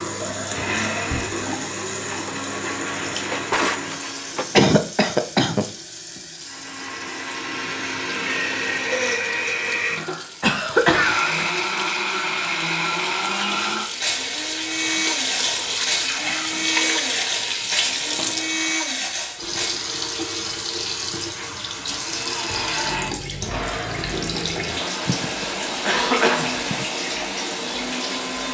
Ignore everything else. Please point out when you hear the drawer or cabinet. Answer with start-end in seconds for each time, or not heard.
3.2-4.8.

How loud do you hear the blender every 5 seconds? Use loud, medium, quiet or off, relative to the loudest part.
medium, loud, loud, loud, medium, medium.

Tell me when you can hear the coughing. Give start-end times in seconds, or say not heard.
4.5-5.7, 10.4-11.4, 25.1-26.9.